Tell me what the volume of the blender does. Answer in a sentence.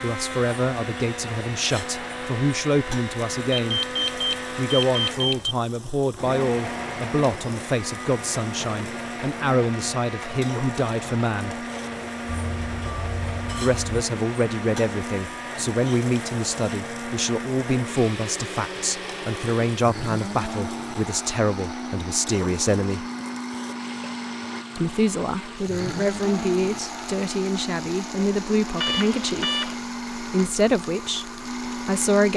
The volume of the blender stays about the same.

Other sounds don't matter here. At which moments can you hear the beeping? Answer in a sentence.
The beeping can be heard from 3.5 to 5.5 s, from 12.2 to 14.1 s and from 28.8 to 29.8 s.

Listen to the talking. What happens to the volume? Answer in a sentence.
The volume of the talking stays about the same.